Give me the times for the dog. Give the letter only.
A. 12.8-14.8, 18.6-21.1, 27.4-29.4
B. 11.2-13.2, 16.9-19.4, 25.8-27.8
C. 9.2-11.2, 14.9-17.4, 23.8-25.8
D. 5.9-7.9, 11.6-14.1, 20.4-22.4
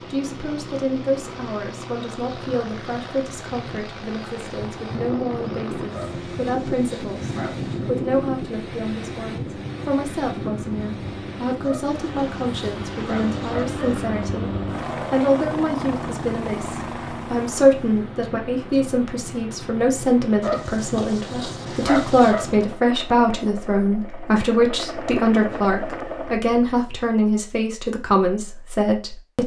D.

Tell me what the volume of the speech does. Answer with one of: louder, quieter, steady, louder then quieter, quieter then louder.
louder.